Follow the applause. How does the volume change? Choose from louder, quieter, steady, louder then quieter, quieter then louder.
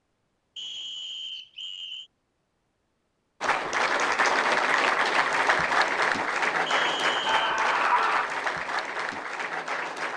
quieter.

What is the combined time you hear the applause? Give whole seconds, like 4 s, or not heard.
7 s.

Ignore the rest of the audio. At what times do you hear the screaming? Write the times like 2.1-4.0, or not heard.
7.2-8.3.